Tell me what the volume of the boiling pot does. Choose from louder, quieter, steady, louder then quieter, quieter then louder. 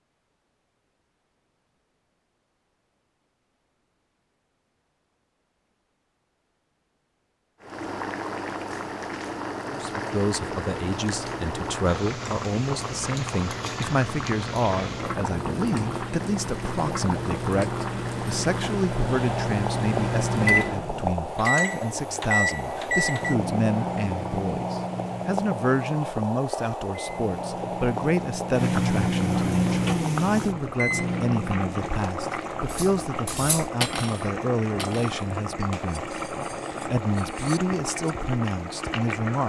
steady.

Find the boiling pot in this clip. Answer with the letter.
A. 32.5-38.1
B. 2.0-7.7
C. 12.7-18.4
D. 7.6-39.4
D.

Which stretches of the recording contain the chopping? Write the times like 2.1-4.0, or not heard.
not heard.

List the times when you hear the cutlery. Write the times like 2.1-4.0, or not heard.
32.5-38.1.